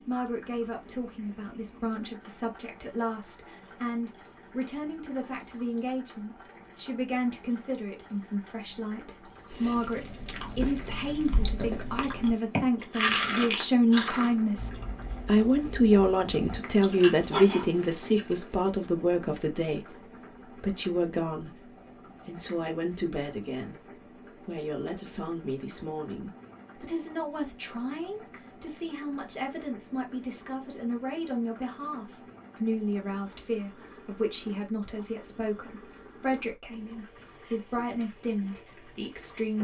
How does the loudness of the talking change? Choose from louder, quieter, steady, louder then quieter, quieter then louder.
louder then quieter.